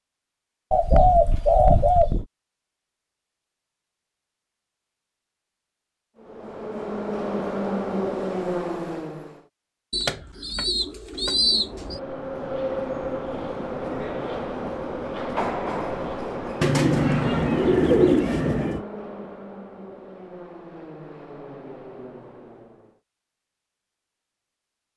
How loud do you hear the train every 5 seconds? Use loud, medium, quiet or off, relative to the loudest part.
off, loud, loud, loud, quiet.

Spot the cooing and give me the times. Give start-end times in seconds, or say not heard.
0.7-2.2, 9.9-12.0, 16.6-18.8.